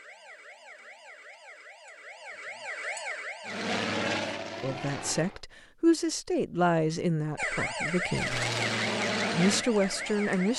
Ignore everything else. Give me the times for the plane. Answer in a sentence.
You can hear the plane from 3.5 to 5.4 s and from 8.1 to 10.5 s.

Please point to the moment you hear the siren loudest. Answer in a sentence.
The loudest moment of the siren is at 8 seconds.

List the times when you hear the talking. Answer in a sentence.
The talking can be heard from 4.6 to 8.4 s and from 9.3 to 10.5 s.